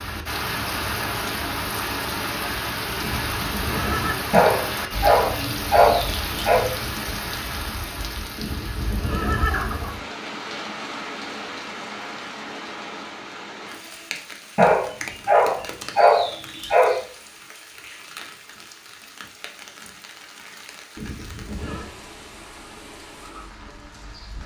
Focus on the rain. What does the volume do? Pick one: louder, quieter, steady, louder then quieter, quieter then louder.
quieter.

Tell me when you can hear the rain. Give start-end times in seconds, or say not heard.
0.0-24.4.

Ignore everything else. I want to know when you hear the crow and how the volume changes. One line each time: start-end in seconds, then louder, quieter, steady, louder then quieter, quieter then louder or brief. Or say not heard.
not heard.